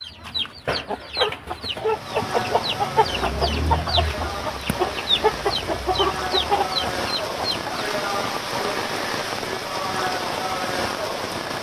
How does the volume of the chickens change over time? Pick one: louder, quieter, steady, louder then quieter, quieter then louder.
steady.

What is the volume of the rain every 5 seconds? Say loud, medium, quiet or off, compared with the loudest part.
medium, loud, loud.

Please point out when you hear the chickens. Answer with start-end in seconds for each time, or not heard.
0.0-7.7.